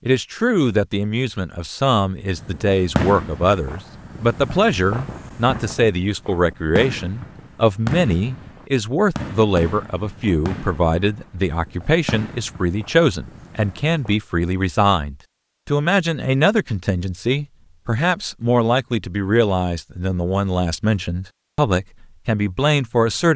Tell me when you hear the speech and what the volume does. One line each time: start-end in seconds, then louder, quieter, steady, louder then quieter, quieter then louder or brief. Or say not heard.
0.1-23.3 steady.